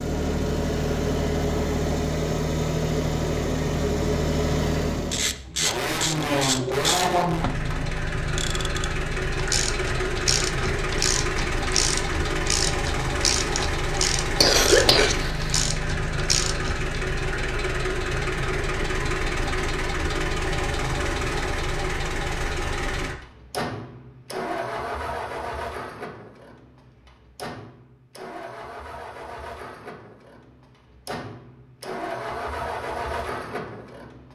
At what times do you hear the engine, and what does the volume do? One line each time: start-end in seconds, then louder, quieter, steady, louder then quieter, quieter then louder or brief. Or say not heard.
0.0-34.3 quieter.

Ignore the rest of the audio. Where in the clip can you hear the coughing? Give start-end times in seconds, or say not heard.
14.4-15.5.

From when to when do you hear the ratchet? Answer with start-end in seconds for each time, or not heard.
5.0-16.9.